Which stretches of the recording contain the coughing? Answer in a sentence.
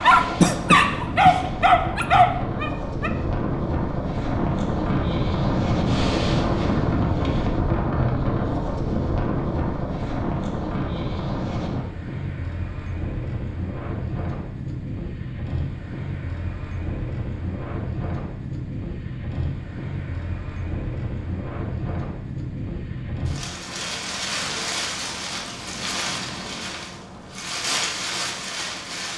The coughing can be heard from 0.4 to 1.4 s.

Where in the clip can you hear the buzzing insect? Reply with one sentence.
The buzzing insect can't be heard in this clip.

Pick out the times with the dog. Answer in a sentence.
You can hear the dog from 0.0 to 3.1 s.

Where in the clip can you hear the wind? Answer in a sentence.
The wind can be heard from 0.0 to 29.1 s.